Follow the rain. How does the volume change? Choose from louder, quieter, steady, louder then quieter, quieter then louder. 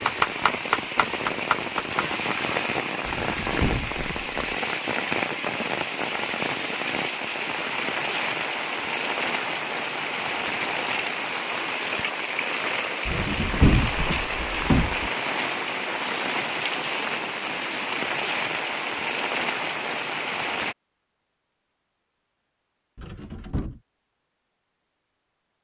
steady.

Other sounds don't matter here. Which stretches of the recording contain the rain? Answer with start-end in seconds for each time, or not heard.
0.0-20.8.